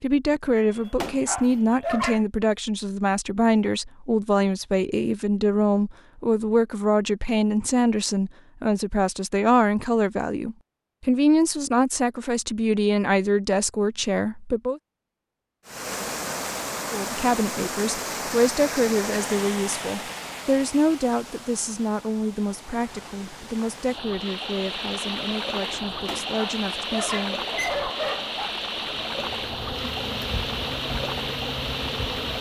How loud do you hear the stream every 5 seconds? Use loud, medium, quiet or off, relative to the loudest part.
off, off, off, loud, medium, loud, loud.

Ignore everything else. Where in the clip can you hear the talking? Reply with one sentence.
You can hear the talking from 0.0 to 14.8 s and from 16.9 to 27.4 s.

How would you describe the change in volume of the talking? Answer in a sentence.
The loudness of the talking goes down.